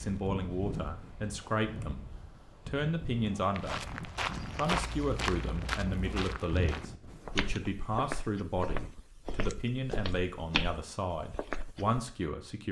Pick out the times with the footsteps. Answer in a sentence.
The footsteps can be heard from 3.5 to 12.1 s.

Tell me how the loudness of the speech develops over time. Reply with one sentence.
The loudness of the speech stays about the same.